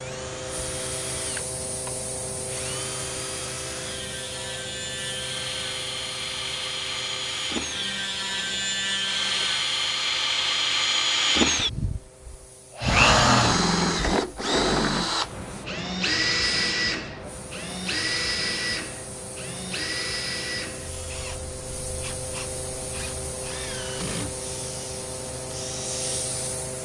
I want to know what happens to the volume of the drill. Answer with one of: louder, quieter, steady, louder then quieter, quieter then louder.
louder then quieter.